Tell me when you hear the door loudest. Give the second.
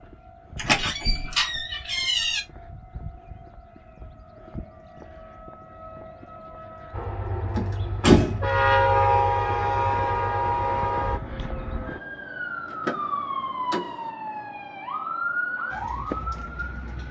8 s.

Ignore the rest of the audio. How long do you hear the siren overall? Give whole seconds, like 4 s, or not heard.
17 s.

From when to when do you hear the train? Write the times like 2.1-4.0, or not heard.
6.9-11.2.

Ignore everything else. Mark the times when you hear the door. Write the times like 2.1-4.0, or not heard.
0.6-2.4, 7.5-8.5, 12.7-14.1.